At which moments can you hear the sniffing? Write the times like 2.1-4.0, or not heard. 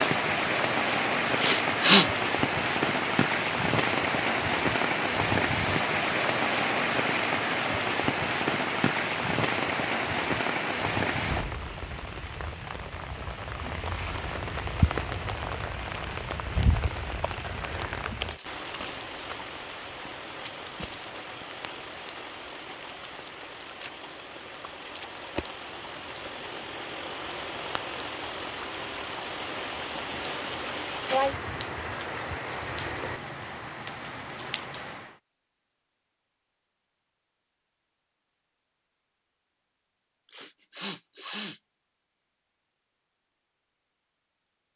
1.4-2.1, 40.3-41.6.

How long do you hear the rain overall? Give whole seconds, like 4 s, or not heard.
35 s.